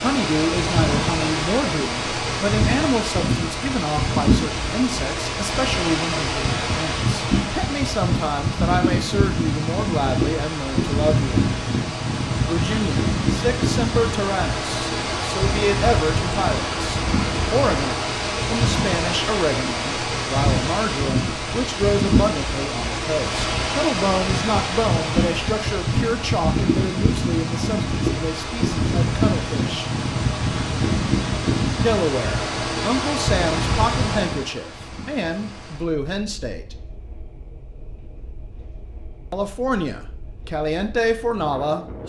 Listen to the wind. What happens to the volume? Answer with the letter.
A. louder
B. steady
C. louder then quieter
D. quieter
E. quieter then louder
D.